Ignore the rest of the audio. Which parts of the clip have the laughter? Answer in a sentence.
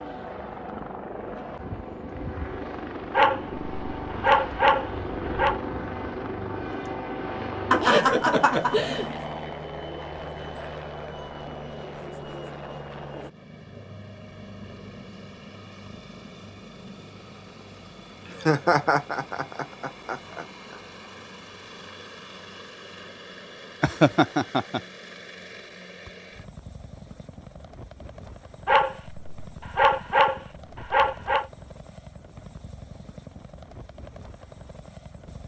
You can hear the laughter from 7.7 to 9.1 s, from 18.2 to 20.4 s and from 23.8 to 24.8 s.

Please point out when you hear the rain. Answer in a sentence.
The rain can't be heard in this clip.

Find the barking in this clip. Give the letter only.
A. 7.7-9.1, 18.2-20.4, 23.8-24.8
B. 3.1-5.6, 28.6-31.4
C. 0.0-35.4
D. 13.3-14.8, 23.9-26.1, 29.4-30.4
B.